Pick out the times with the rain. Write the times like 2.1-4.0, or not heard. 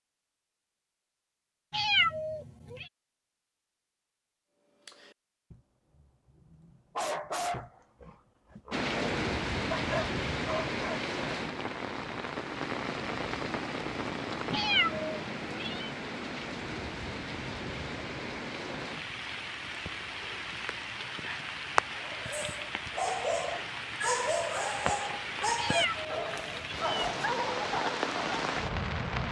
8.7-29.2.